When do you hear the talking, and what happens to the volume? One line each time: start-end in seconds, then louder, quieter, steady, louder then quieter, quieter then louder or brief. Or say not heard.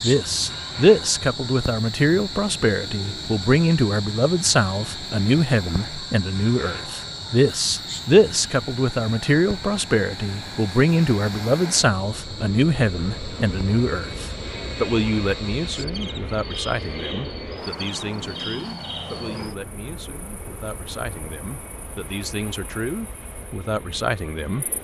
0.0-24.7 quieter.